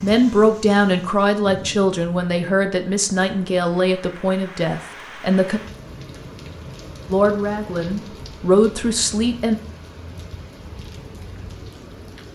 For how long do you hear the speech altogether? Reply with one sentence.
The speech can be heard for 8 seconds in total.